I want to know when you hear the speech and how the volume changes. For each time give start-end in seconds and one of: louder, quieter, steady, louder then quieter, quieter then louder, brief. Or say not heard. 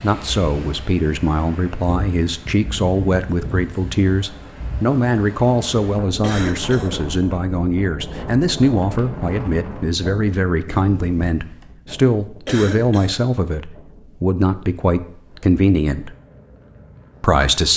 0.0-16.1 steady
17.2-17.7 brief.